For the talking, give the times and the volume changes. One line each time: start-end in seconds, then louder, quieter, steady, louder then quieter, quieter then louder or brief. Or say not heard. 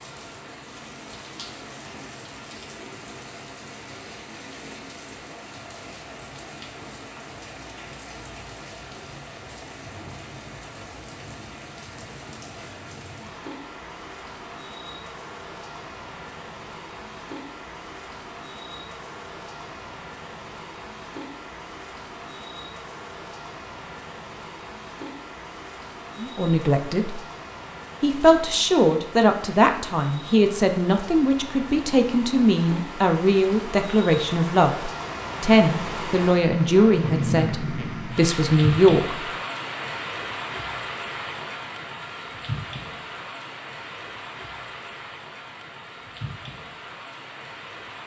26.2-27.2 brief
28.0-39.1 steady.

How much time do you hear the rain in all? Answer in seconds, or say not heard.
48 s.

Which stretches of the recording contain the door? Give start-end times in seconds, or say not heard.
not heard.